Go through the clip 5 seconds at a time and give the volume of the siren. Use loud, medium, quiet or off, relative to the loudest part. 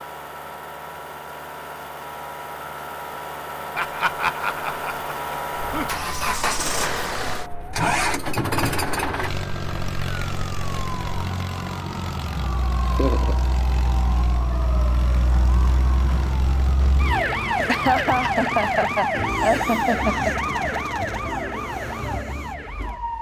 off, quiet, medium, loud, loud.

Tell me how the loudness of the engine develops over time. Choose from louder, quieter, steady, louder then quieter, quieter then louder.
louder then quieter.